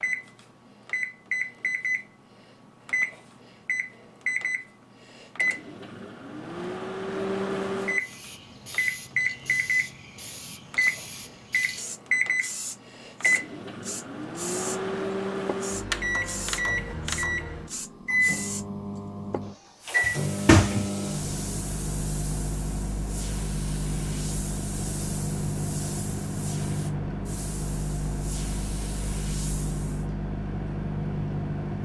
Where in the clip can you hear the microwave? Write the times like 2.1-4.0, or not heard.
0.0-31.8.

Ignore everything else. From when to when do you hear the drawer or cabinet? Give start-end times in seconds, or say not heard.
20.0-20.9.